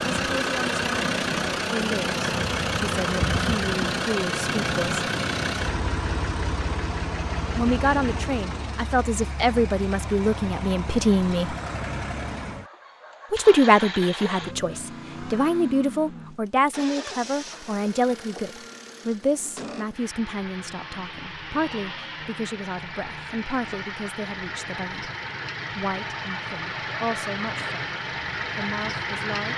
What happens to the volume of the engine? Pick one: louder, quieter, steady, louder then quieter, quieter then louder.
quieter then louder.